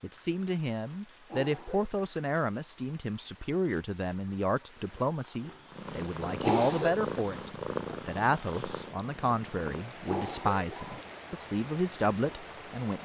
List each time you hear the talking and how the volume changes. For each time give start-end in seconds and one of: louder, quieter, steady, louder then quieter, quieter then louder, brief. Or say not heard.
0.0-12.9 steady.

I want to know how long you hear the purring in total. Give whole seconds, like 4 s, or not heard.
4 s.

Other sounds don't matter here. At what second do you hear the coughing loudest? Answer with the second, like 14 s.
7 s.